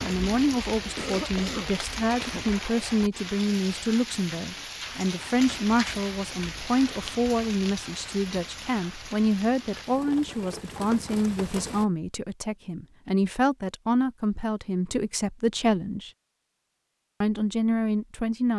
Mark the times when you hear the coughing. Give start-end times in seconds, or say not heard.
0.8-2.5.